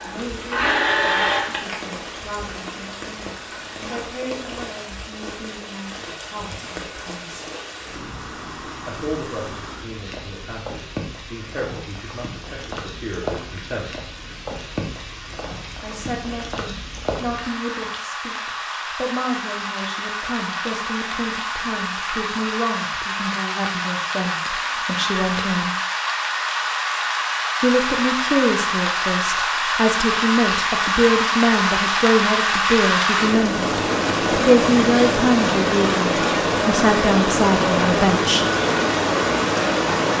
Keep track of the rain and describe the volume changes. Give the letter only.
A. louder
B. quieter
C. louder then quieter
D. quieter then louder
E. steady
A.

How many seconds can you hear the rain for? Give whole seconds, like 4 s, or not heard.
40 s.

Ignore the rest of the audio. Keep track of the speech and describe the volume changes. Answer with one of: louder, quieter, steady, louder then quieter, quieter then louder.
louder.